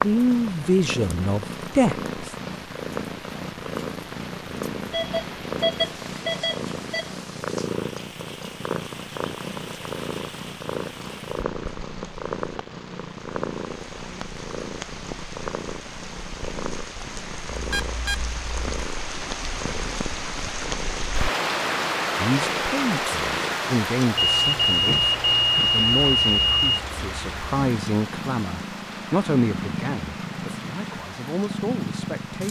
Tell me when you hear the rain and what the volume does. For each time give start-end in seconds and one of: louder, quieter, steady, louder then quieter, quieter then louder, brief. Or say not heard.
0.0-32.4 louder then quieter.